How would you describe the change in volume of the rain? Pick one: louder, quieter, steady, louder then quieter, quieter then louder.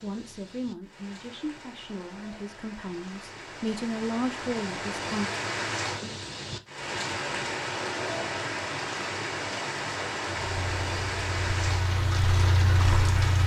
louder.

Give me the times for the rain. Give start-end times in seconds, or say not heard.
0.0-13.4.